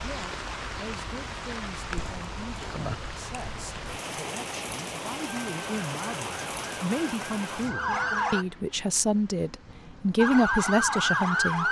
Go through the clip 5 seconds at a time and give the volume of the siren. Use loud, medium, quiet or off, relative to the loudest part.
off, medium, loud.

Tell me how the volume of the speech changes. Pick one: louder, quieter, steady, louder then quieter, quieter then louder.
louder.